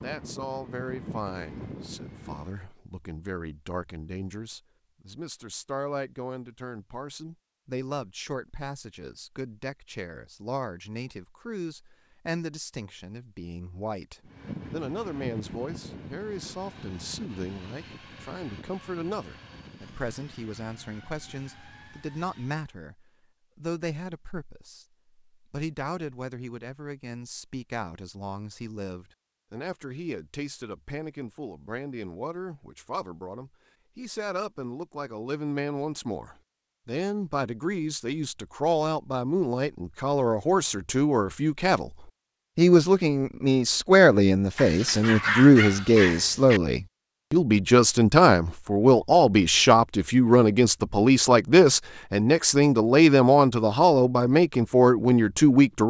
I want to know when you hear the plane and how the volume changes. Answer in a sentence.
The plane can be heard briefly from 0.0 to 2.6 s; and from 14.2 to 22.6 s, getting quieter.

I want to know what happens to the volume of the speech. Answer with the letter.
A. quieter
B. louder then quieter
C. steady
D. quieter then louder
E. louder
E.